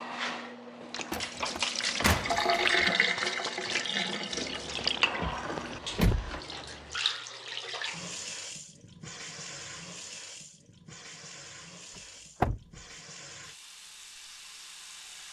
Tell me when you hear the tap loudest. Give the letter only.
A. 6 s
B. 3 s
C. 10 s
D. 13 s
B.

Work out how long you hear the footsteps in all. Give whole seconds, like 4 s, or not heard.
3 s.